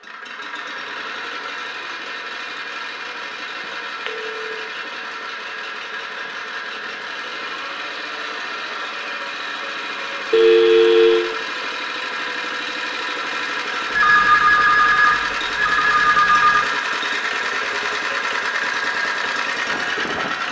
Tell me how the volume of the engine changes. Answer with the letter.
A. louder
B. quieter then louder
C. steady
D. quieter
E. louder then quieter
A.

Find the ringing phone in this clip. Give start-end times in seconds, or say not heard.
4.0-4.6, 10.3-11.2, 13.9-16.6.